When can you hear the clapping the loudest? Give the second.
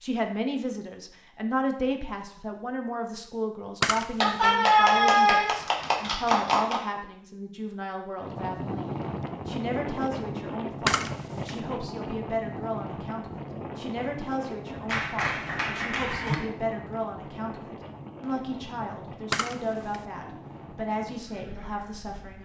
5 s.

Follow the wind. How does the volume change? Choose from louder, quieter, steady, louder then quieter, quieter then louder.
quieter.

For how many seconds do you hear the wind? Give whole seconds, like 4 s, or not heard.
14 s.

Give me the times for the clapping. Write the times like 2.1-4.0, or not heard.
4.2-6.8, 14.8-16.4.